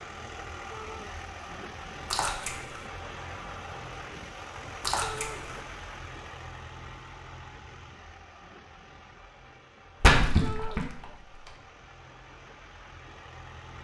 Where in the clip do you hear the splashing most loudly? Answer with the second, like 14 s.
10 s.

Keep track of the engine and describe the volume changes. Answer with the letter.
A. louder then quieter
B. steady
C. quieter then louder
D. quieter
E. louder
D.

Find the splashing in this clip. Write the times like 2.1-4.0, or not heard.
2.1-2.8, 4.8-5.5, 10.0-11.5.